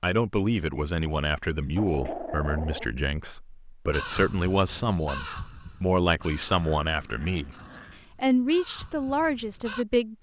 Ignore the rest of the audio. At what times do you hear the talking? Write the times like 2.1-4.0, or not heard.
0.0-7.5, 8.2-10.1.